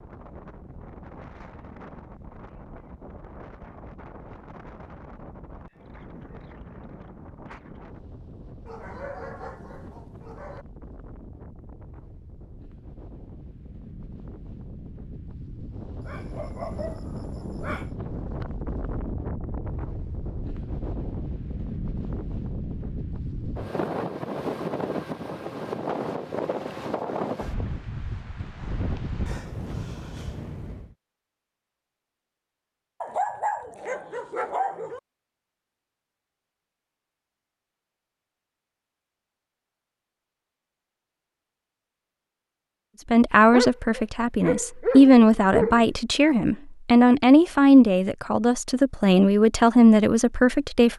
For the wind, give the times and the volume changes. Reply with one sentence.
You can hear the wind from 0.0 to 30.9 s, getting louder.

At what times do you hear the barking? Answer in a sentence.
The barking can be heard from 8.7 to 10.7 s, from 16.0 to 17.9 s, from 33.0 to 35.0 s and from 43.5 to 46.0 s.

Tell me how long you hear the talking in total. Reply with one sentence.
You can hear the talking for 8 seconds altogether.